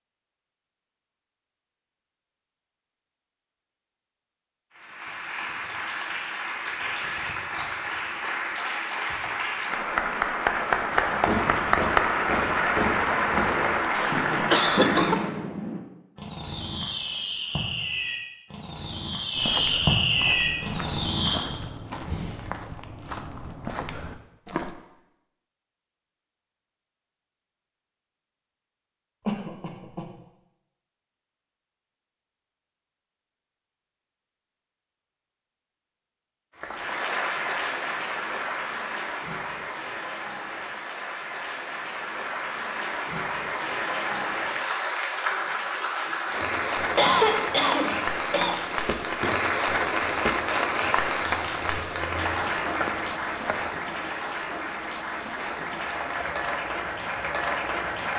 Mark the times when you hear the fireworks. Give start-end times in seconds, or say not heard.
10.7-21.4.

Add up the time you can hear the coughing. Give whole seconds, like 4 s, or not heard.
4 s.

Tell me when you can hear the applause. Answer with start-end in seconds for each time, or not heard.
4.7-15.4, 36.5-58.1.